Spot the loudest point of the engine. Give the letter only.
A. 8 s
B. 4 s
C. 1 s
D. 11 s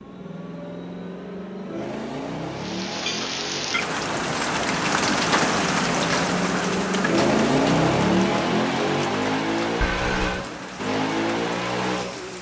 A.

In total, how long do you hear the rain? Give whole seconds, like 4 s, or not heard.
10 s.